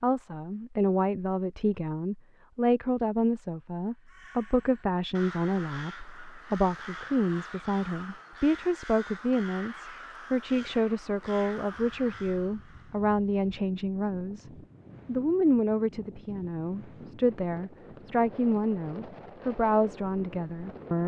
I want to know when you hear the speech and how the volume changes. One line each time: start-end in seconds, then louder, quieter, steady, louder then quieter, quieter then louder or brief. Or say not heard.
0.0-21.0 steady.